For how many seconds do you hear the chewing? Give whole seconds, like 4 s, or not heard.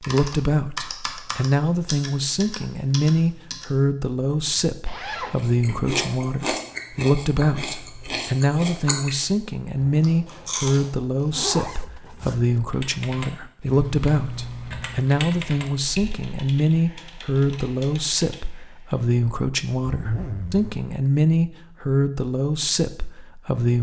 6 s.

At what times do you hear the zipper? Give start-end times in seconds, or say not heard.
4.8-5.4, 11.3-12.6, 19.9-20.9.